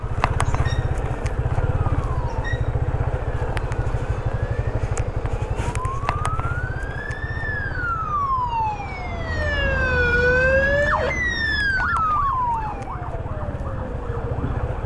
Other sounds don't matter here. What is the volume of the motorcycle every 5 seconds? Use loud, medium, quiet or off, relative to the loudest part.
loud, medium, medium.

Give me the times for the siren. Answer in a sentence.
You can hear the siren from 0.0 to 14.8 s.